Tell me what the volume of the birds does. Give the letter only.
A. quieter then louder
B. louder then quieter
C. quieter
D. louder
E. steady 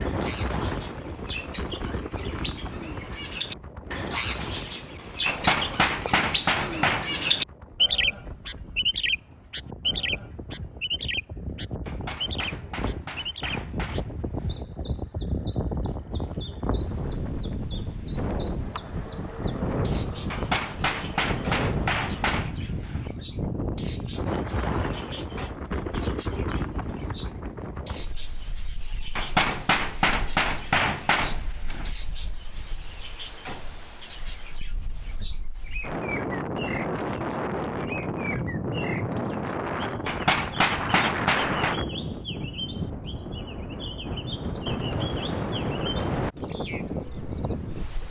C.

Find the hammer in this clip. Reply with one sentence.
The hammer can be heard from 5.2 to 7.0 s, from 11.8 to 14.7 s, from 20.3 to 23.1 s, from 29.1 to 31.9 s and from 40.0 to 41.8 s.